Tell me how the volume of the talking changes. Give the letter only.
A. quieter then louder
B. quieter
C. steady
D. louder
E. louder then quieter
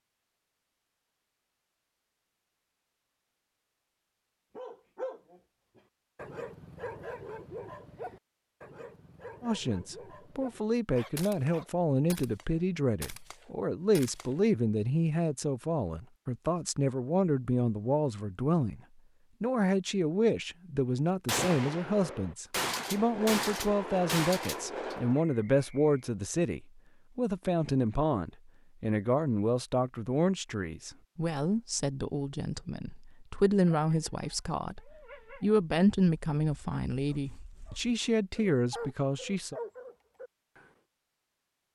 C.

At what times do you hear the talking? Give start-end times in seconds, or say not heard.
9.4-18.8, 19.4-39.5.